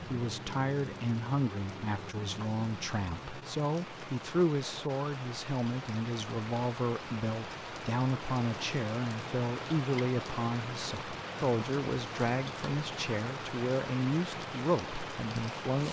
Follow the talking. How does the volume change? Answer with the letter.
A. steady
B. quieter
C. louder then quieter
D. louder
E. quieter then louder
A.